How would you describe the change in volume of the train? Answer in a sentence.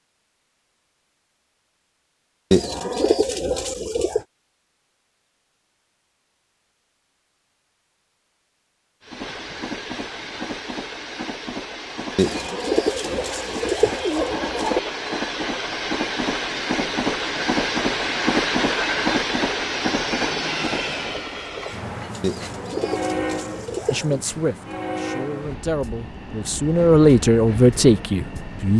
The loudness of the train goes up, then down.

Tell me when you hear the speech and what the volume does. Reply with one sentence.
You can hear the speech from 23.9 to 28.7 s, getting louder.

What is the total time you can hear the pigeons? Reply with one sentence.
You can hear the pigeons for 6 seconds altogether.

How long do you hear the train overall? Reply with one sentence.
The train can be heard for 20 seconds in total.